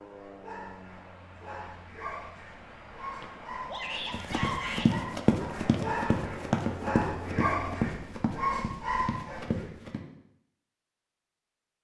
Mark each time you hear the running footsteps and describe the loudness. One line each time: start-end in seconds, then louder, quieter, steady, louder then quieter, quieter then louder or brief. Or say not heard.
4.1-10.0 quieter.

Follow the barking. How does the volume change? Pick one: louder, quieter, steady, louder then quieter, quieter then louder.
louder.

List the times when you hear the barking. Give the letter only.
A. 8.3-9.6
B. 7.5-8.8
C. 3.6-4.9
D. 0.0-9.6
D.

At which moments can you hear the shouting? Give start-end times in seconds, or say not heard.
3.6-4.9.